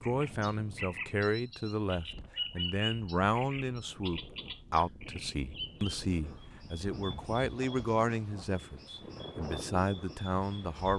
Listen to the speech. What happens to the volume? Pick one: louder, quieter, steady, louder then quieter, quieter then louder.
steady.